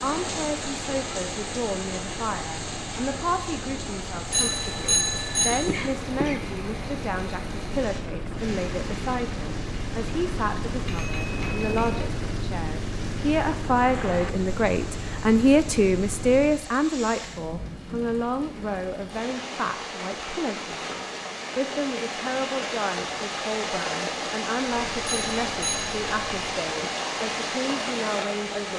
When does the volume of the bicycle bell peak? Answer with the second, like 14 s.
5 s.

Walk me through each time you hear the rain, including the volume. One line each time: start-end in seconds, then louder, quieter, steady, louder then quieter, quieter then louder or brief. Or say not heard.
0.0-28.7 quieter then louder.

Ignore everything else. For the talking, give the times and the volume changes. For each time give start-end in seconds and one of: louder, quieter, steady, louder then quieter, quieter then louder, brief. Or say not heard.
0.0-28.7 louder then quieter.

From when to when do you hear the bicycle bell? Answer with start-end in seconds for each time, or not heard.
4.3-5.7, 10.8-12.1, 25.1-25.9.